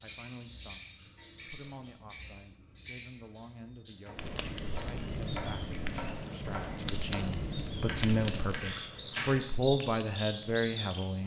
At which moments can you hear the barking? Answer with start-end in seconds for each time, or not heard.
not heard.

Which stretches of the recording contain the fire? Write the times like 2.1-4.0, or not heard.
4.2-11.2.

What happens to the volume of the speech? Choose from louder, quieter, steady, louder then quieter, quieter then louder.
louder.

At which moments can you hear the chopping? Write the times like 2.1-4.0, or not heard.
4.0-9.4.